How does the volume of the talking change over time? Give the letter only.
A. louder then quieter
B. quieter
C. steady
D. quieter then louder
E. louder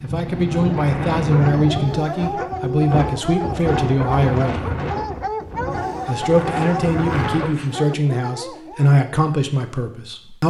C.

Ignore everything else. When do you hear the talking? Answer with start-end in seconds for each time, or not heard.
0.0-4.7, 6.0-10.4.